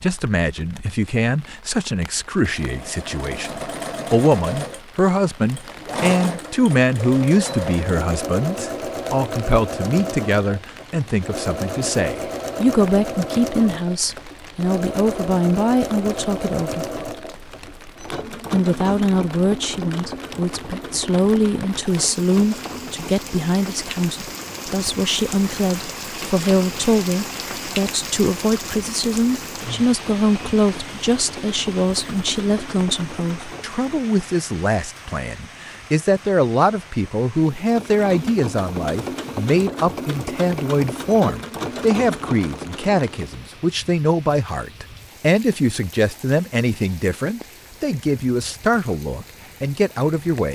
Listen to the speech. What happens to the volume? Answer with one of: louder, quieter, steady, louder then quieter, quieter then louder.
steady.